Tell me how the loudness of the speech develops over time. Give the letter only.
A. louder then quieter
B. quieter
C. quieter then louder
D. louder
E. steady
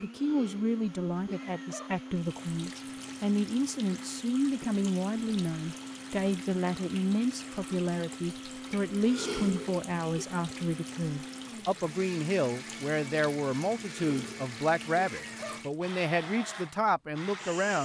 E.